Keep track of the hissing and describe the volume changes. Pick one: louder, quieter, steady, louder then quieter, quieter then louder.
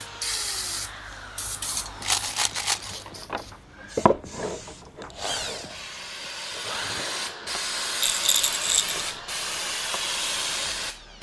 quieter then louder.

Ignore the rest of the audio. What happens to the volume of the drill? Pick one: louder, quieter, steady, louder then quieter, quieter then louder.
louder then quieter.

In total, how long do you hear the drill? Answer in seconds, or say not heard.
11 s.